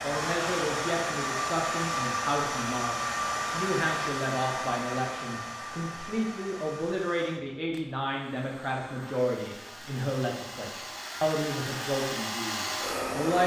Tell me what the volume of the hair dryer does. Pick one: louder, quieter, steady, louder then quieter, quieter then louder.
quieter then louder.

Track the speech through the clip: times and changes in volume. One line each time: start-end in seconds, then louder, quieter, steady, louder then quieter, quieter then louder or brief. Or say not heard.
0.0-13.4 steady.